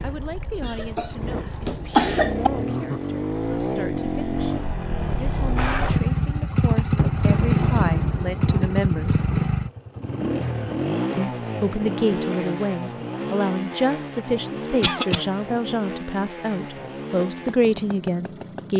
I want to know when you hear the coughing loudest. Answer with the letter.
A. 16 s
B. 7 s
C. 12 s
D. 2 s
D.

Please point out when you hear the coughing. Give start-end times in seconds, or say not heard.
0.6-2.5, 14.8-15.2.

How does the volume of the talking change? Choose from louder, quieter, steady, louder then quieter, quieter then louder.
louder.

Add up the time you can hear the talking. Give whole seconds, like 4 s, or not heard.
16 s.